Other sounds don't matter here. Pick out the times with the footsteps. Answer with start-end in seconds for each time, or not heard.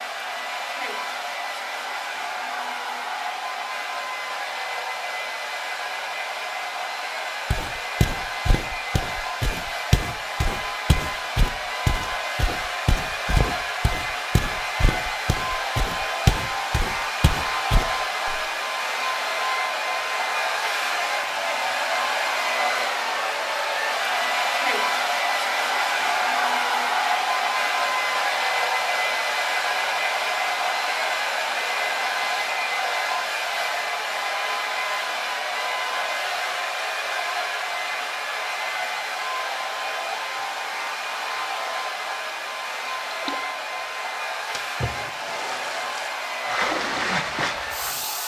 7.5-18.4.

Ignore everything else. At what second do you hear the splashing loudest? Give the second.
47 s.